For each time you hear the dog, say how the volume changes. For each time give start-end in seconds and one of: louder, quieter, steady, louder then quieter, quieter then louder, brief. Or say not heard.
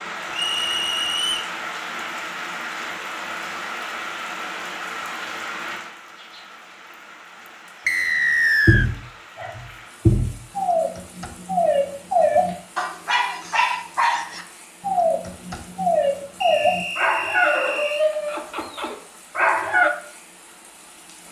8.7-19.9 steady.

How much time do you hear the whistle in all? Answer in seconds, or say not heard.
4 s.